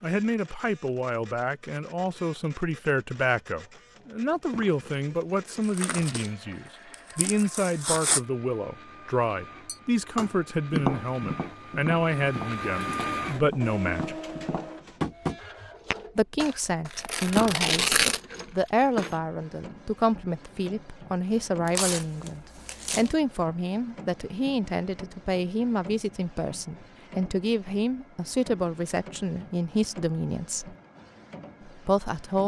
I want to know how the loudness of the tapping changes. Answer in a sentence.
The volume of the tapping goes down, then up.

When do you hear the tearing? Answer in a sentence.
The tearing can be heard from 5.7 to 6.3 s, from 6.9 to 8.2 s, from 16.9 to 18.2 s and from 21.6 to 23.1 s.